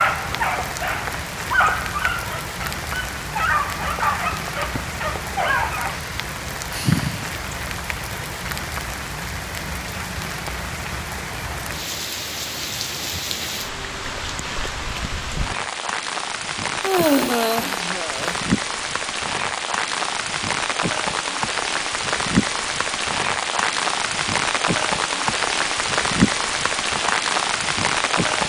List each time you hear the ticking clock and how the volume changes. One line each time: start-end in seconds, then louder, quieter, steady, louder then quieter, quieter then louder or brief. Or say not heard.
not heard.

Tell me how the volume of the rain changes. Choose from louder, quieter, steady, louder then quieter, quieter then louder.
louder.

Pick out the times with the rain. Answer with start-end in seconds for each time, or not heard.
0.0-28.4.